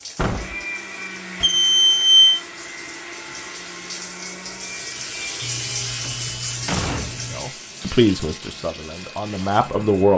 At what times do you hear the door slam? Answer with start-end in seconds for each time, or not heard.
0.1-0.7, 6.0-7.5.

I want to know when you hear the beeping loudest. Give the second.
2 s.